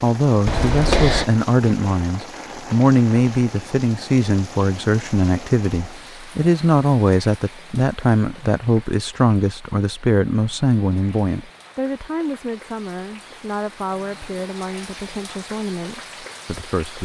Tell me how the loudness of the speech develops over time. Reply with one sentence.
The volume of the speech goes down.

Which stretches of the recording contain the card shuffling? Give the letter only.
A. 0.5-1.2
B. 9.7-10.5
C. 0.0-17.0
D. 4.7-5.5
A.